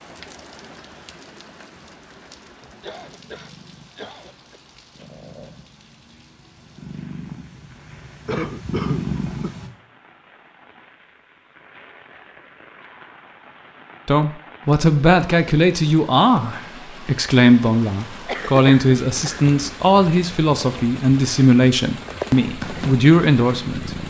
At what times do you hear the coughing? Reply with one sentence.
The coughing can be heard from 2.6 to 4.6 s, from 8.2 to 9.6 s and from 18.2 to 19.4 s.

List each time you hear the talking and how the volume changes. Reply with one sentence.
You can hear the talking from 14.1 to 24.0 s, at a steady volume.